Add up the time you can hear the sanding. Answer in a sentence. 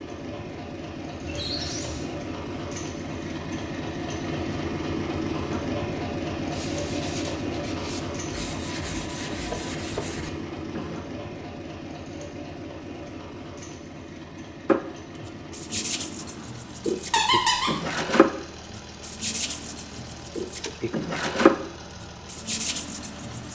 You can hear the sanding for 13 seconds altogether.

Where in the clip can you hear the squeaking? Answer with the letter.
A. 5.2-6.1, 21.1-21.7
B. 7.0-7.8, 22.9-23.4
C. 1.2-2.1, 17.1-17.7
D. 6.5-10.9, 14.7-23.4
C.